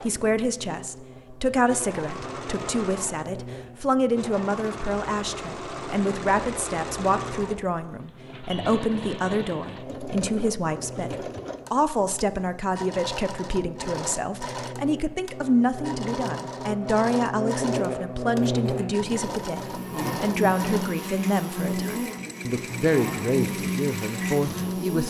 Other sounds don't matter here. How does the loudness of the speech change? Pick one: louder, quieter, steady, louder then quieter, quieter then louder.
steady.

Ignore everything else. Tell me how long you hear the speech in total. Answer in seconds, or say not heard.
25 s.